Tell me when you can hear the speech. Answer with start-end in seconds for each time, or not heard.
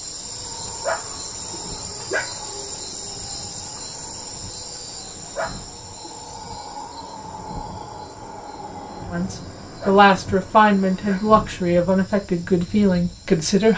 9.1-13.7.